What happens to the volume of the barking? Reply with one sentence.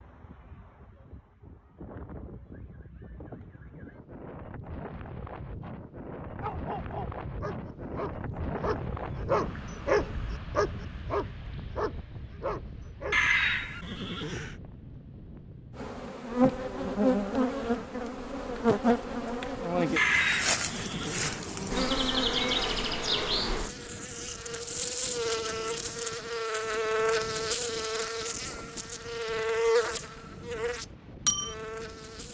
The volume of the barking goes up, then down.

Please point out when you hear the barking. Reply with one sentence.
You can hear the barking from 6.4 to 13.3 s.